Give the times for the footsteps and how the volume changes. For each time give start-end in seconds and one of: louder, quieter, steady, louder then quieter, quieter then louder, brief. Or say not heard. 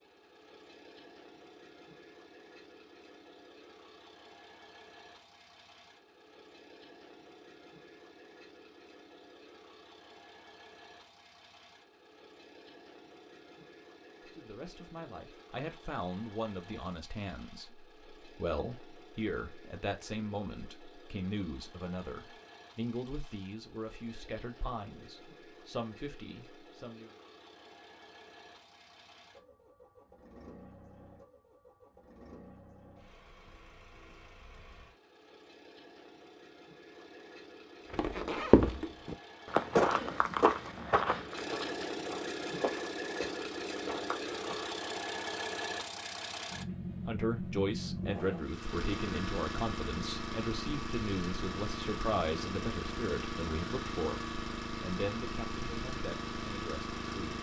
37.9-44.8 quieter.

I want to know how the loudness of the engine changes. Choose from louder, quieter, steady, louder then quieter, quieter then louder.
louder.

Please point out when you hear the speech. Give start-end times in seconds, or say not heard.
14.3-27.1, 47.0-57.3.